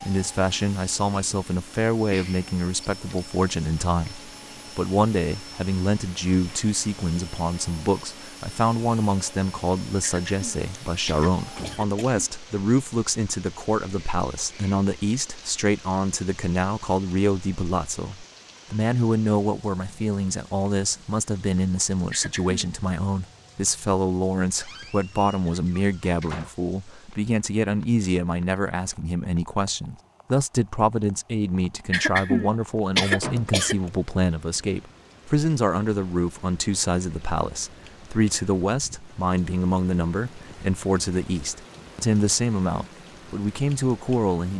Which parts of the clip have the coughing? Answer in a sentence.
You can hear the coughing from 10.0 to 12.2 s, from 22.1 to 22.8 s and from 31.9 to 33.8 s.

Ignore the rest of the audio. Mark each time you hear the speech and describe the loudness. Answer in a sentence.
You can hear the speech from 0.0 to 44.5 s, at a steady volume.